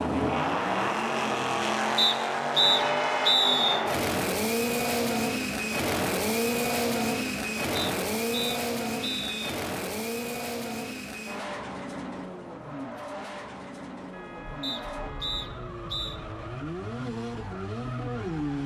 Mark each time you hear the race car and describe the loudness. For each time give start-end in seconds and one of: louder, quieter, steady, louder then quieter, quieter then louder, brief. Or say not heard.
0.0-18.6 quieter.